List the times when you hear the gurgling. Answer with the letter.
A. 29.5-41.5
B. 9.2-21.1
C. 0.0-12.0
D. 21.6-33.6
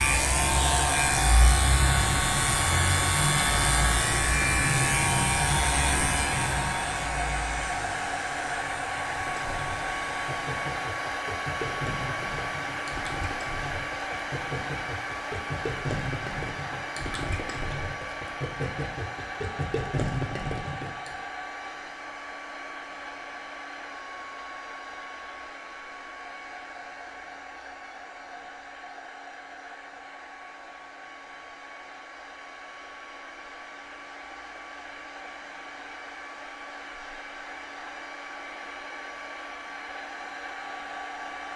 B.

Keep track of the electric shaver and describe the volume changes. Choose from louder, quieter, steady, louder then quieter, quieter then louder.
quieter.